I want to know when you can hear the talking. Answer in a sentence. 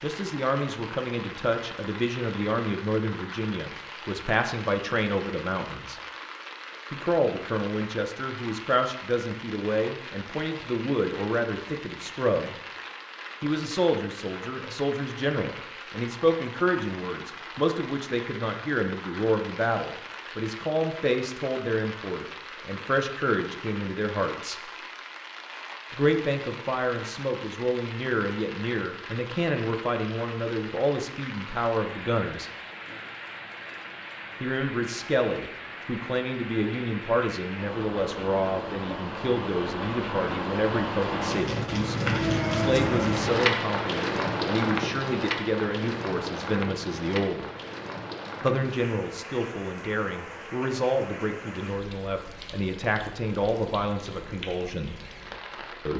You can hear the talking from 0.0 to 6.0 s, from 6.9 to 12.6 s, from 13.4 to 24.7 s, from 25.9 to 32.5 s, from 34.4 to 47.5 s and from 48.4 to 55.0 s.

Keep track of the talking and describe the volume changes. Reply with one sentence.
The volume of the talking stays about the same.